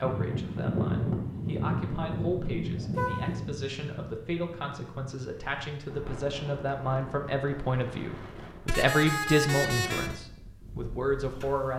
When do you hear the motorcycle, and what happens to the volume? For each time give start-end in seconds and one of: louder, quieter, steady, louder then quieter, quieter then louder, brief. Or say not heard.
not heard.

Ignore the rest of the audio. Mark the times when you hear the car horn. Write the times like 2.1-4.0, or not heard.
2.9-3.4, 8.7-10.2.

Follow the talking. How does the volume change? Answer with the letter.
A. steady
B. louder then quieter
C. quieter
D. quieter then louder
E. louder
E.